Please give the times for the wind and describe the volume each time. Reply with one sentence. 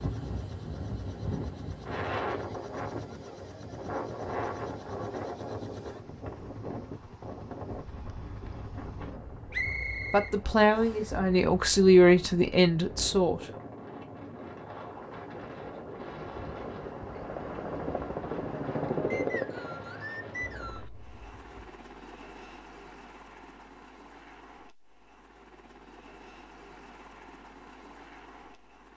The wind can be heard from 0.0 to 21.7 s, getting quieter.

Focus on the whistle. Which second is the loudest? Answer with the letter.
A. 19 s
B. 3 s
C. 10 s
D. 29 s
C.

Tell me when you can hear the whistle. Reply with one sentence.
You can hear the whistle from 9.5 to 11.1 s and from 19.1 to 20.9 s.